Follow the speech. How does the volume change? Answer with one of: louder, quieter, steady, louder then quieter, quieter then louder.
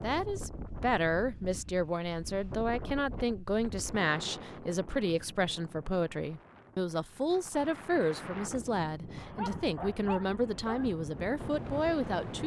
steady.